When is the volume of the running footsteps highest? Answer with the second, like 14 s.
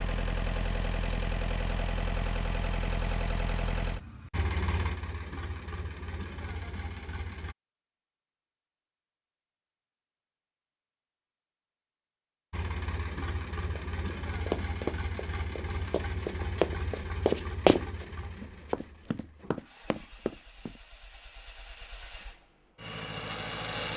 18 s.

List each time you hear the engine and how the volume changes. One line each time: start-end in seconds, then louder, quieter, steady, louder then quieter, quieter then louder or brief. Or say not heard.
0.0-7.5 quieter
12.5-23.9 quieter then louder.